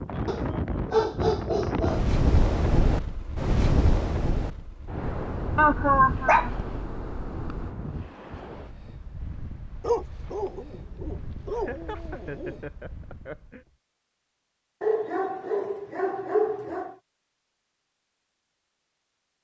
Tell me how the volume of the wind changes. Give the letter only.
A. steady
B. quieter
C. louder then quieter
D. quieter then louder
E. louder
B.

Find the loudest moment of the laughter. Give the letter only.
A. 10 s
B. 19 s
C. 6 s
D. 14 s
C.